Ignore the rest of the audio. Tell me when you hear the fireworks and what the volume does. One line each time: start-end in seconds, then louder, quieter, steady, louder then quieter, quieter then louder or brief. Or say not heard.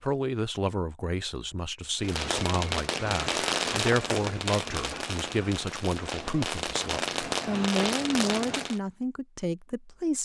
2.0-8.8 quieter then louder.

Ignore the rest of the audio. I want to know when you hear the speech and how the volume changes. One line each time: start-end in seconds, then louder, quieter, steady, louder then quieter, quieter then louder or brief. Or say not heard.
0.0-10.1 steady.